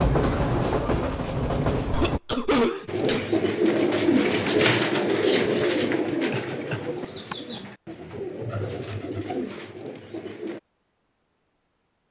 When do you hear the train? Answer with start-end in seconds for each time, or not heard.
0.0-2.2.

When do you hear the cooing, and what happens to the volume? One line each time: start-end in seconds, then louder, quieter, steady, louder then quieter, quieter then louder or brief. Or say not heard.
2.9-10.6 quieter.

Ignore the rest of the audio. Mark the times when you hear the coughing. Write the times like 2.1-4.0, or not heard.
1.9-3.3, 6.3-7.3.